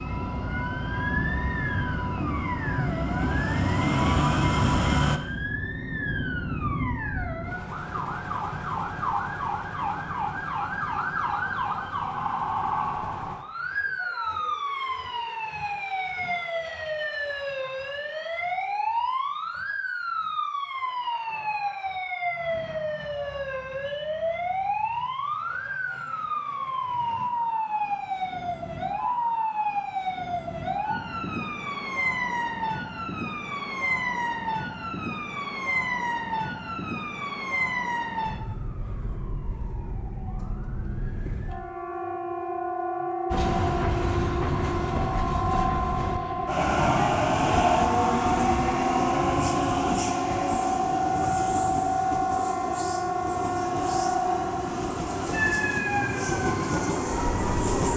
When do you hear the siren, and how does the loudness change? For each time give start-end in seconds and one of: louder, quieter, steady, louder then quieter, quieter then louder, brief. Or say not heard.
0.0-57.9 steady.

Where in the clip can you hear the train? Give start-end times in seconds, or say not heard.
0.0-5.2, 43.3-57.9.